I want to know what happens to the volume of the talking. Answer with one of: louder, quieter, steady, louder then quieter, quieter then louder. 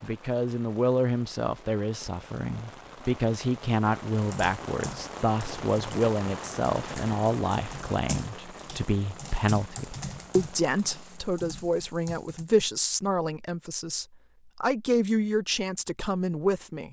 steady.